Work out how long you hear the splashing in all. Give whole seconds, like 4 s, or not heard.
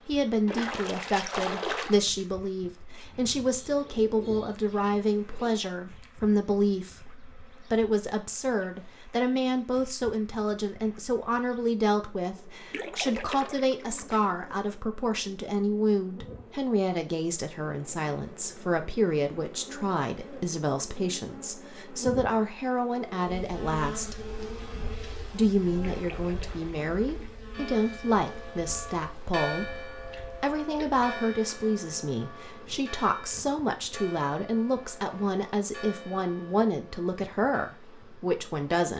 6 s.